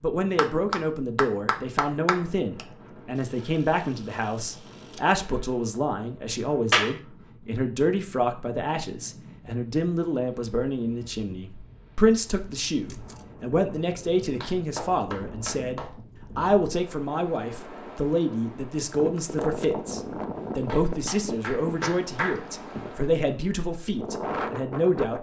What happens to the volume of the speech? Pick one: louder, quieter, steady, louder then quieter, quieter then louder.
steady.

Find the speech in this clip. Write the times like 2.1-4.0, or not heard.
0.0-25.1.